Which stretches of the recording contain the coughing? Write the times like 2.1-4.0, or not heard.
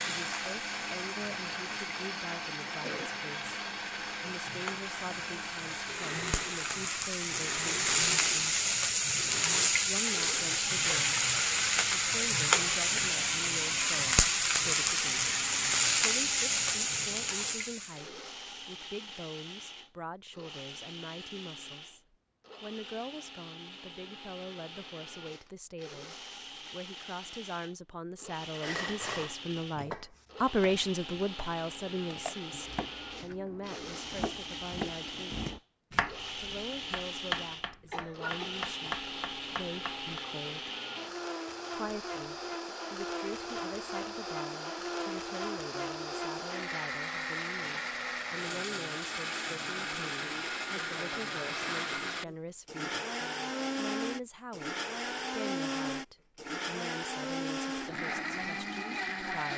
2.8-3.2, 37.9-39.0.